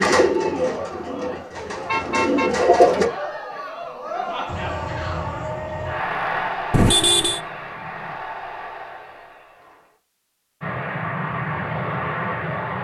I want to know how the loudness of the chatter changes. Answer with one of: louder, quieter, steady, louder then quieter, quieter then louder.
louder then quieter.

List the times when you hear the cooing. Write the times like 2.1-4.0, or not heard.
0.0-3.1.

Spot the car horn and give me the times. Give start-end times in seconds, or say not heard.
1.9-2.7, 6.7-7.4.